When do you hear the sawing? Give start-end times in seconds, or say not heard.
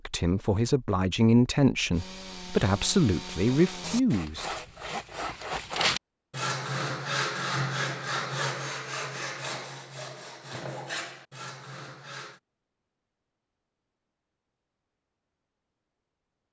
1.9-12.4.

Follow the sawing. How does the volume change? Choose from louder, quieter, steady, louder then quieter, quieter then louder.
louder then quieter.